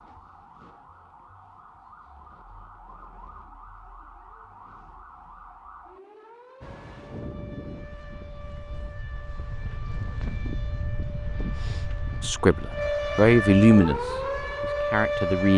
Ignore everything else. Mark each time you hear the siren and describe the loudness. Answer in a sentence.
The siren can be heard from 0.0 to 15.5 s, getting louder.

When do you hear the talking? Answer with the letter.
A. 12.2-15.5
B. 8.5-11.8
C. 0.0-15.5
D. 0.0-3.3
A.